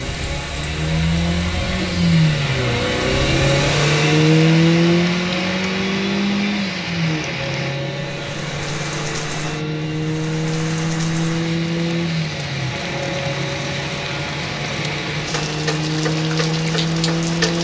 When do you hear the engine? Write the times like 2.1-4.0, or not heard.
0.0-17.5.